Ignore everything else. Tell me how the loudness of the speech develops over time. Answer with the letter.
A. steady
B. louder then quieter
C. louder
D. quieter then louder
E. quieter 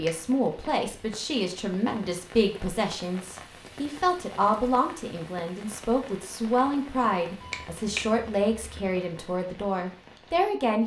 A.